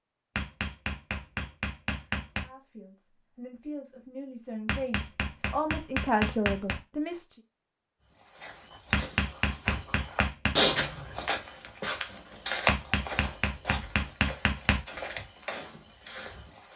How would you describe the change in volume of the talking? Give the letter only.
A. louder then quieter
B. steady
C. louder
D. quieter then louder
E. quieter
C.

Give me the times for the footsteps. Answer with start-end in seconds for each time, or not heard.
8.3-16.7.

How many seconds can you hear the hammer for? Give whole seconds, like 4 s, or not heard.
8 s.